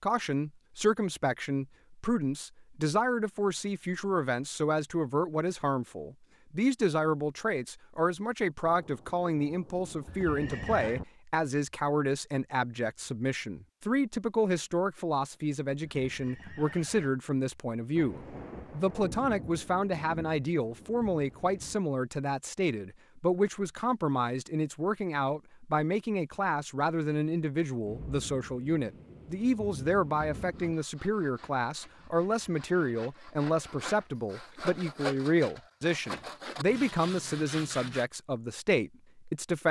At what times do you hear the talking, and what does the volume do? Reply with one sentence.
You can hear the talking from 0.0 to 39.6 s, at a steady volume.